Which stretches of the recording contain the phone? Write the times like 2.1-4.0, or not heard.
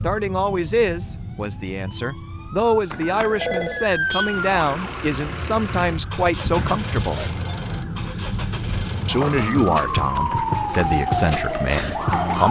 2.9-3.9, 6.5-7.6.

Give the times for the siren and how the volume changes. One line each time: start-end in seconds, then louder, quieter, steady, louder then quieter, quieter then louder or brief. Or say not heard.
0.0-12.4 louder.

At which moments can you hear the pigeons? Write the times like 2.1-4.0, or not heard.
not heard.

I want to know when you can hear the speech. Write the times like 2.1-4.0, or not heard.
0.0-7.2, 9.1-12.4.